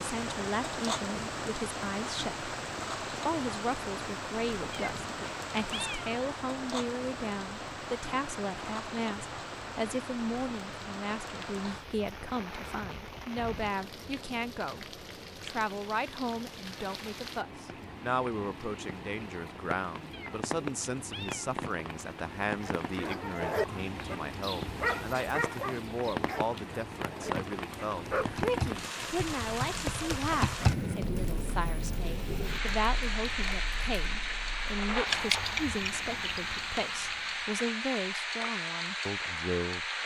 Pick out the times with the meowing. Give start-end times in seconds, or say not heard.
4.7-6.2, 20.1-21.6.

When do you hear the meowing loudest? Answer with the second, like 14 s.
6 s.